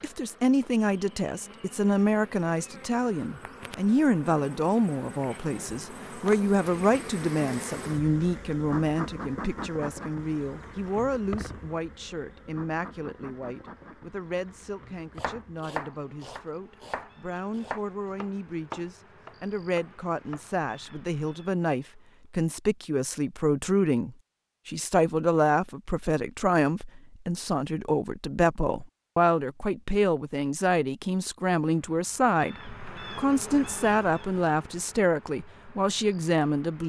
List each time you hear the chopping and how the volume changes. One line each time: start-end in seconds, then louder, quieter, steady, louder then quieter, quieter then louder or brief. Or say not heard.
15.2-20.4 quieter.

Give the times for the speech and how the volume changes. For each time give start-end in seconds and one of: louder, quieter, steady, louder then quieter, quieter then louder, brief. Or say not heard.
0.0-36.8 quieter then louder.